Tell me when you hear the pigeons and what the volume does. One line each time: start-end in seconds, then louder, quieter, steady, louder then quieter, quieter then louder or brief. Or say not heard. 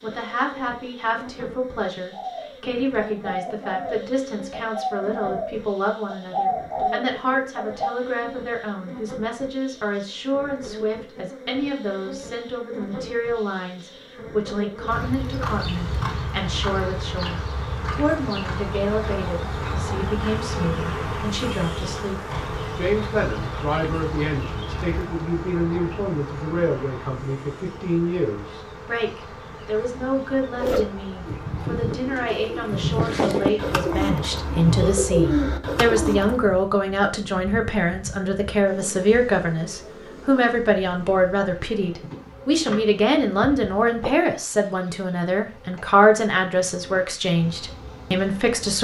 2.1-8.0 louder
30.6-36.4 louder.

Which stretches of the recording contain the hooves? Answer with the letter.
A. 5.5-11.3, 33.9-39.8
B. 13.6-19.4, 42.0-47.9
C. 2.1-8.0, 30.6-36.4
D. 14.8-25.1
D.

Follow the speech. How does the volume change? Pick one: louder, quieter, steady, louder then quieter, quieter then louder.
louder.